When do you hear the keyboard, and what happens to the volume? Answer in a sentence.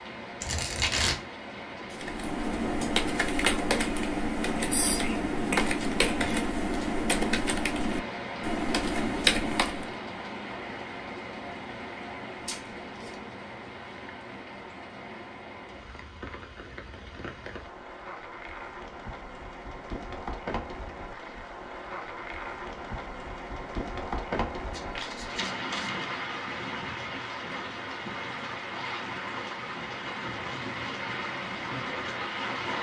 You can hear the keyboard from 1.9 to 9.9 s, at a steady volume.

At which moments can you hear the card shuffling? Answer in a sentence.
You can hear the card shuffling from 0.4 to 1.2 s, from 12.3 to 13.2 s and from 24.7 to 26.1 s.